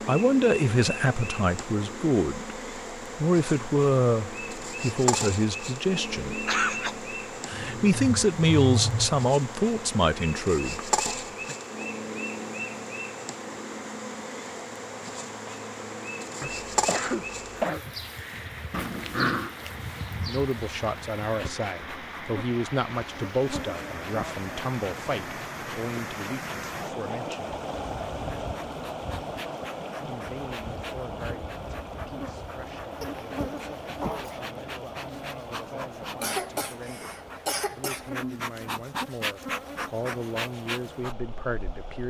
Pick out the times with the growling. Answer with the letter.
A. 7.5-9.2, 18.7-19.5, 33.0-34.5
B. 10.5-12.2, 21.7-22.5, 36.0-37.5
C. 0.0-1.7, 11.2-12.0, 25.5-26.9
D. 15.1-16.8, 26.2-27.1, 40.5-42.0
A.